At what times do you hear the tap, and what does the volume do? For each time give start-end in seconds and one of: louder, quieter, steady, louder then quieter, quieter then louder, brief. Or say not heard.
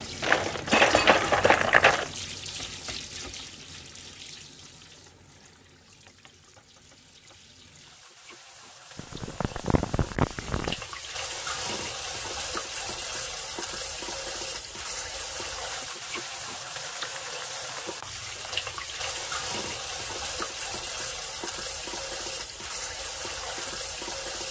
0.0-24.4 quieter then louder.